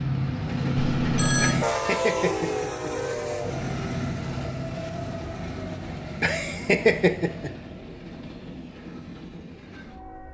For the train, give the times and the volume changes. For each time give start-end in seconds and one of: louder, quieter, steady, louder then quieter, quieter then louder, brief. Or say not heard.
0.0-10.2 quieter.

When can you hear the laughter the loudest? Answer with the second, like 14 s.
7 s.